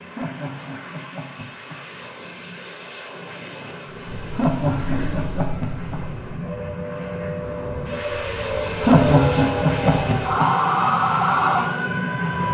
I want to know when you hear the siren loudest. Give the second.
11 s.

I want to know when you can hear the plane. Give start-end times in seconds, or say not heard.
0.0-12.5.